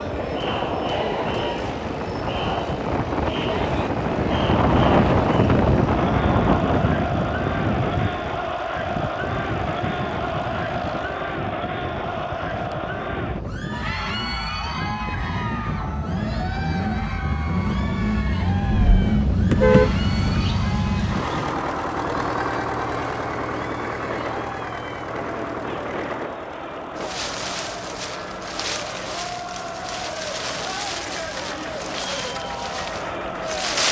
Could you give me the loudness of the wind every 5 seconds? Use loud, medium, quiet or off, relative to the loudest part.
loud, loud, medium, medium, medium, medium, medium.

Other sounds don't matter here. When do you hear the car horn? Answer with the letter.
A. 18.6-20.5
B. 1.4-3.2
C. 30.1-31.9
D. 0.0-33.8
A.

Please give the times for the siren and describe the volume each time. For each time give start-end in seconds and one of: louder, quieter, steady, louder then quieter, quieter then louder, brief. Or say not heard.
not heard.